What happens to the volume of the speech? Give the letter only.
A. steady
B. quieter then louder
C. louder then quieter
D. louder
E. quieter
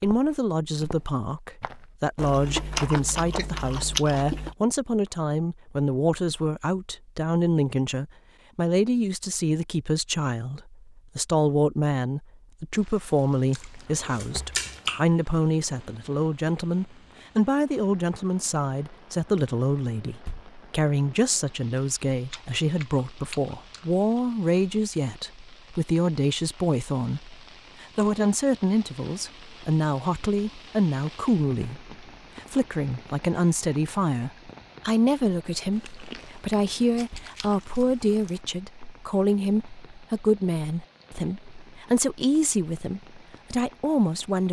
A.